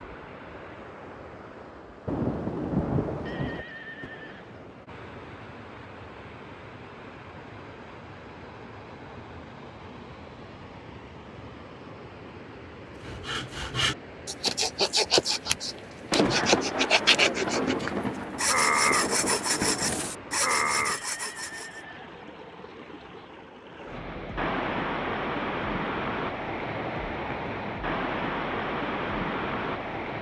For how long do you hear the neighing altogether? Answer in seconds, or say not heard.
3 s.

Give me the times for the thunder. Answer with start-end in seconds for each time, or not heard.
2.0-4.1, 16.1-20.1.